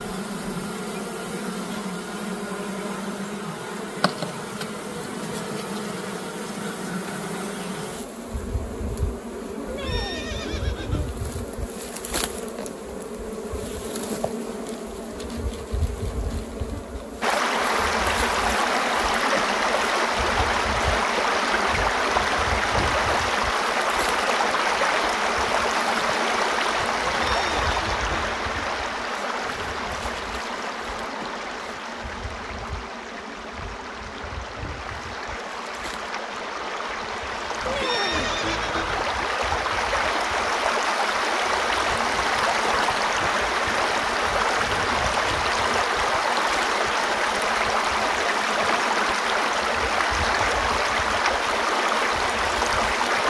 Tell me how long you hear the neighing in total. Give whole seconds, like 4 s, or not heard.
4 s.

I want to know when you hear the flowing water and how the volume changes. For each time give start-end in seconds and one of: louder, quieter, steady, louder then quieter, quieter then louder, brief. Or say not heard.
17.2-53.2 quieter then louder.